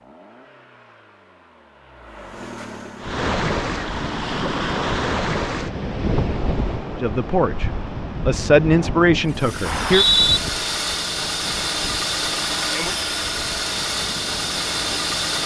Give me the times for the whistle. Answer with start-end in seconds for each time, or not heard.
9.6-10.4.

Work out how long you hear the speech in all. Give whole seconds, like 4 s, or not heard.
3 s.